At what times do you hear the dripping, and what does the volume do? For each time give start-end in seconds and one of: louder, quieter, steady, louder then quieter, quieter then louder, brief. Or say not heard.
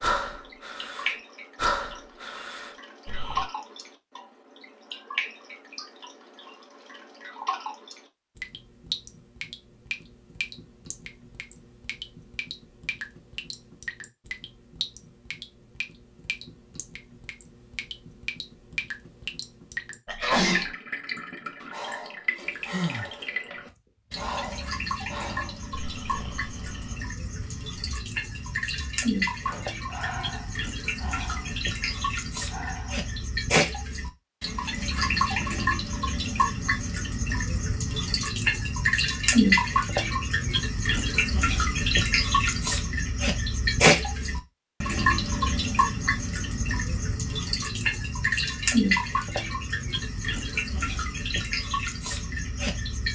0.2-53.0 louder.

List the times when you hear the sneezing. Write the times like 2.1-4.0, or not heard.
20.1-20.7.